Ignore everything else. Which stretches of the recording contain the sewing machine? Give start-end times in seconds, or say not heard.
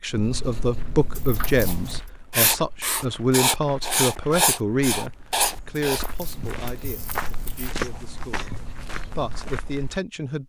not heard.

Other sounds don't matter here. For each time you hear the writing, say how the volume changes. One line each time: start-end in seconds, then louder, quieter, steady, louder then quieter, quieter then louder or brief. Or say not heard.
0.1-9.6 louder then quieter.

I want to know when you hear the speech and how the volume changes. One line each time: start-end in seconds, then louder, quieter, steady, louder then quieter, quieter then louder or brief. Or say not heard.
0.0-8.6 quieter
9.2-10.4 brief.